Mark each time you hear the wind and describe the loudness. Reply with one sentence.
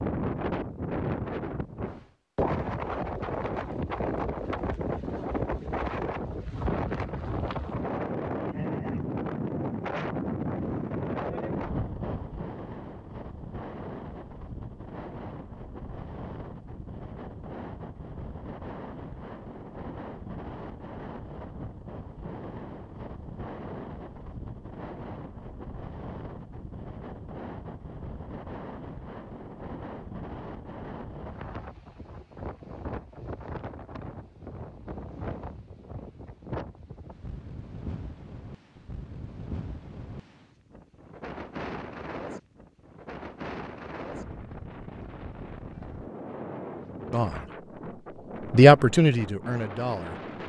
You can hear the wind from 0.0 to 50.4 s, getting quieter.